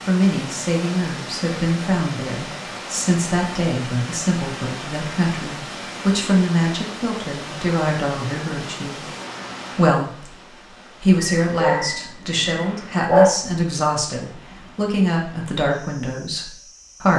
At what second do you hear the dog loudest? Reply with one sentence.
The volume of the dog peaks at 13 seconds.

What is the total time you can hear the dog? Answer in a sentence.
You can hear the dog for 2 seconds altogether.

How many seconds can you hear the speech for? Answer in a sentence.
The speech can be heard for 16 seconds in total.